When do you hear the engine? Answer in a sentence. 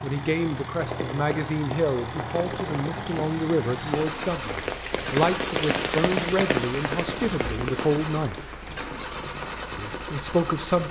The engine can be heard from 0.0 to 10.8 s.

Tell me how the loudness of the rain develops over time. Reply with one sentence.
The loudness of the rain goes up, then down.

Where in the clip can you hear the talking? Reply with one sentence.
The talking can be heard from 0.0 to 8.4 s and from 9.8 to 10.8 s.